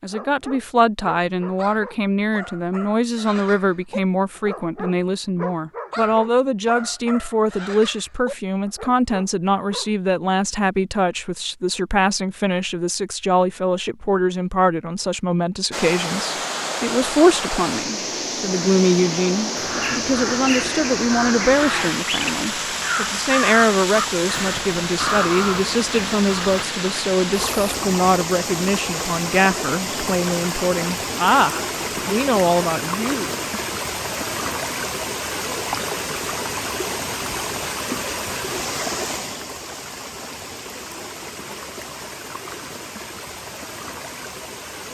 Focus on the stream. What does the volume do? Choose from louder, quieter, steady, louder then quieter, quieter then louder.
quieter.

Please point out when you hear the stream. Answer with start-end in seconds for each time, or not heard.
15.7-44.8.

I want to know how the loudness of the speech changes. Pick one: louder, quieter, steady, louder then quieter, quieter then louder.
steady.